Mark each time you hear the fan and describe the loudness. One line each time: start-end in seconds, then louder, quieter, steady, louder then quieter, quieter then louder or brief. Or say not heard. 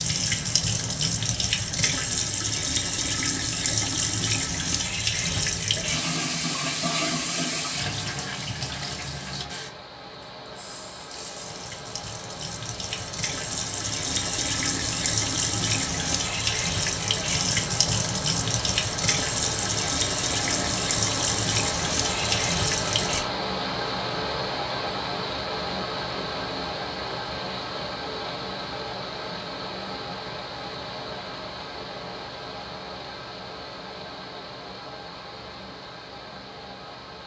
0.0-37.2 louder then quieter.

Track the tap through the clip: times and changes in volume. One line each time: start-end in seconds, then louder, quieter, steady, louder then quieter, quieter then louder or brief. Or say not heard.
0.0-23.2 quieter then louder.